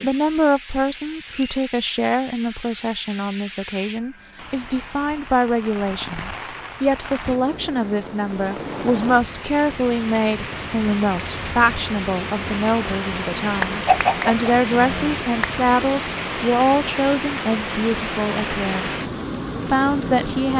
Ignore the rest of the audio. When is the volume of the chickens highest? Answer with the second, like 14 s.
14 s.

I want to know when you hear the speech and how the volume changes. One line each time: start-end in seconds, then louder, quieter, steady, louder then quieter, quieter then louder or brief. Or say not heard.
0.0-19.1 steady
19.6-20.5 brief.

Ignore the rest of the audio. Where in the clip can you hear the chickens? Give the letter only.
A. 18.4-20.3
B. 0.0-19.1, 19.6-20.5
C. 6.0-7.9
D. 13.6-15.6
D.